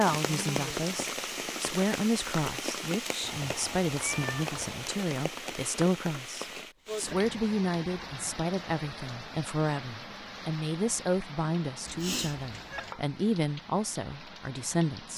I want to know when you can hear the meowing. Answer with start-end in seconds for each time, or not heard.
3.2-4.8, 11.8-12.9.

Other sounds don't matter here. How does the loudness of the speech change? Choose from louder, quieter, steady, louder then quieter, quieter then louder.
steady.